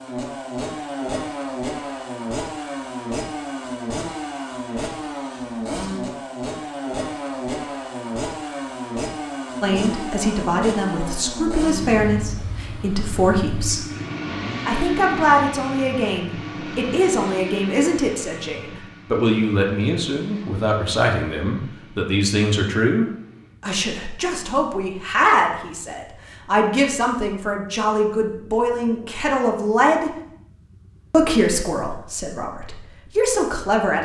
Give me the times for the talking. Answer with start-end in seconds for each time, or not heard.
9.6-13.9, 14.7-30.1, 31.1-34.0.